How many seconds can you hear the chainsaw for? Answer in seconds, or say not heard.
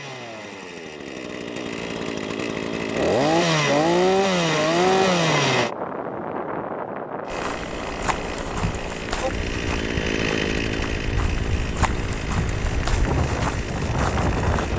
13 s.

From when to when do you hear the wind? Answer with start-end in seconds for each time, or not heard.
4.7-14.7.